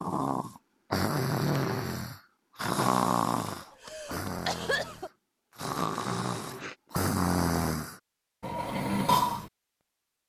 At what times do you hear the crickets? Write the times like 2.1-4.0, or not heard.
not heard.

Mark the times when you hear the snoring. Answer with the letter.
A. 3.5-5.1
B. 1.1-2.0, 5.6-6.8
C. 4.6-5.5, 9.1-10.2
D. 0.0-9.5
D.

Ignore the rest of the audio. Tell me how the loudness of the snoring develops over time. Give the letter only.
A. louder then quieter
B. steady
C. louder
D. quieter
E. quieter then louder
E.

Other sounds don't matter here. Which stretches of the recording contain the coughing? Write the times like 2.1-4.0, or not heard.
3.5-5.1.